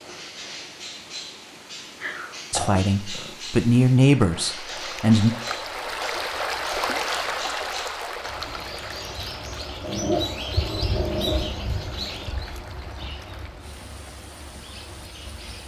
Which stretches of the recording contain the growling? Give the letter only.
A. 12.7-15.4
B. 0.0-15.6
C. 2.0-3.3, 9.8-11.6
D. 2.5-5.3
C.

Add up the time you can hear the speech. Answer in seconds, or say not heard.
3 s.